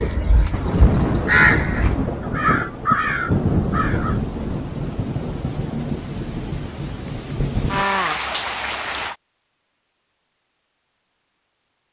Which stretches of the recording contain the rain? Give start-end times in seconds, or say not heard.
0.0-9.2.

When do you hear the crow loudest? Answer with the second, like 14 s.
1 s.